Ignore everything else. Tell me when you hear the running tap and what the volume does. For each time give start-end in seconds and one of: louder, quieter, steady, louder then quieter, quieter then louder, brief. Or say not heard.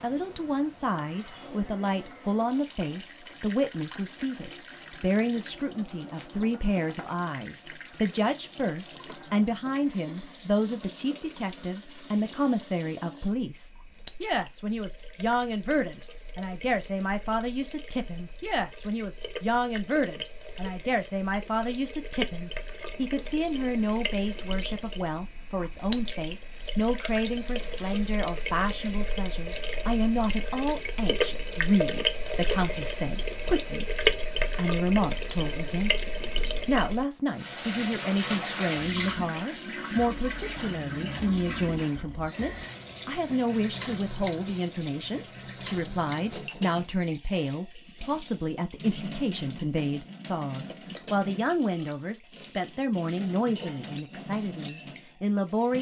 0.0-55.7 louder then quieter.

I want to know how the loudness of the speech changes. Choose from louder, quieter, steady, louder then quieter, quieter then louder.
steady.